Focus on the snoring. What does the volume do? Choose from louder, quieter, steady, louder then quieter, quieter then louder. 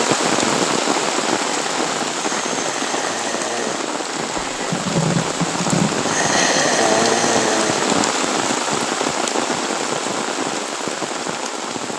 louder.